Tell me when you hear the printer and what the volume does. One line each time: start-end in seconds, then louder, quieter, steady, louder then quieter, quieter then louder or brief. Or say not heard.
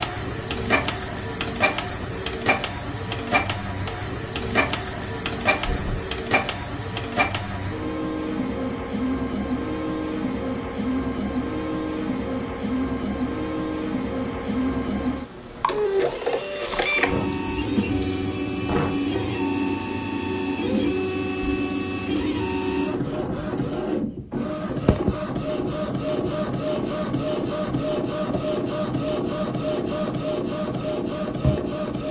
0.0-32.0 steady.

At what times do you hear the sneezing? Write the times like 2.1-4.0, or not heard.
5.5-6.2, 17.1-19.0.